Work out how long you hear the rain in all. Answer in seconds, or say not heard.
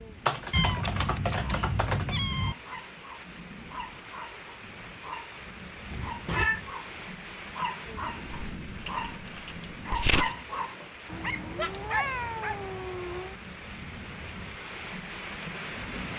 16 s.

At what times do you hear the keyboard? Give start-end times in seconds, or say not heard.
0.2-2.2, 8.3-10.3.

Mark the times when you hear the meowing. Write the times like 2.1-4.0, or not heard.
0.5-2.5, 5.9-6.6, 11.1-13.3.